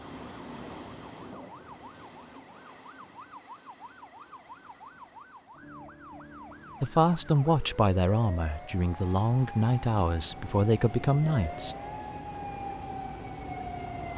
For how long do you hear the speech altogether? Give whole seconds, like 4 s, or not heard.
5 s.